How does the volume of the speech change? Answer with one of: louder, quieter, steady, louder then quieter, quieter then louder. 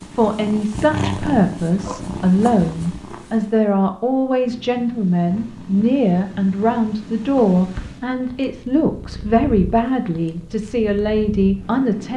steady.